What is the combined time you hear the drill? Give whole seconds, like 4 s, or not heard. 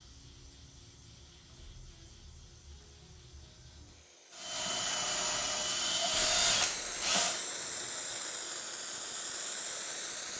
3 s.